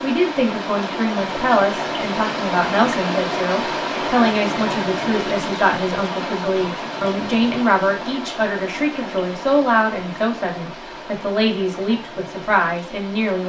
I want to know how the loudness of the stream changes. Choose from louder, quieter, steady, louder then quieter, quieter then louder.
quieter.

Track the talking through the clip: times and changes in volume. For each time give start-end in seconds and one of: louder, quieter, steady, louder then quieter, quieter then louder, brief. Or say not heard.
0.0-13.4 steady.